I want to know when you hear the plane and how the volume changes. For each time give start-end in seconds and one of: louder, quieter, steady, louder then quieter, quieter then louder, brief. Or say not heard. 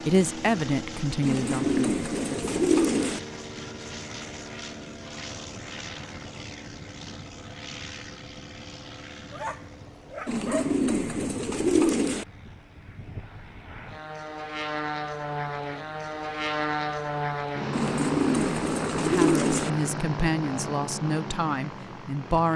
0.0-22.5 quieter then louder.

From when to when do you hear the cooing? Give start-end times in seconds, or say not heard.
1.2-3.2, 10.2-12.2, 17.7-19.7.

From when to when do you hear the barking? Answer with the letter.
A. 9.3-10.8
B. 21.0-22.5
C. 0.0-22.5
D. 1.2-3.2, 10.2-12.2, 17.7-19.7
A.